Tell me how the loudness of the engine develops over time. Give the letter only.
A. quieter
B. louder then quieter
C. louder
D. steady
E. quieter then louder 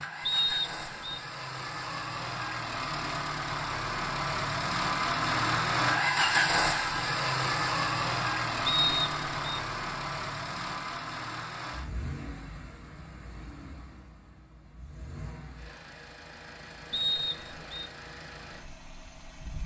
B.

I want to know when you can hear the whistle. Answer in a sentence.
You can hear the whistle from 0.2 to 1.2 s, from 8.7 to 9.6 s and from 16.9 to 17.9 s.